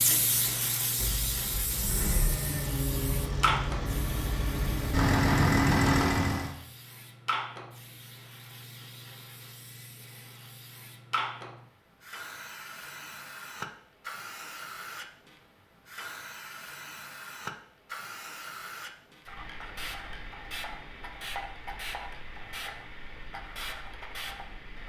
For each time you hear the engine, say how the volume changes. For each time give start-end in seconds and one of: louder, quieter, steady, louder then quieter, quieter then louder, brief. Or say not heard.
0.0-6.5 louder.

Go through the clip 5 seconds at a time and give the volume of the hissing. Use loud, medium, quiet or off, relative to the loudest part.
loud, medium, medium, medium, medium.